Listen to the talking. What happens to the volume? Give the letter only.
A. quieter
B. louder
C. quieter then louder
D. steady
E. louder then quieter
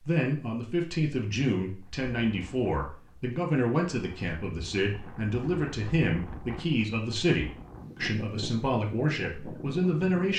D.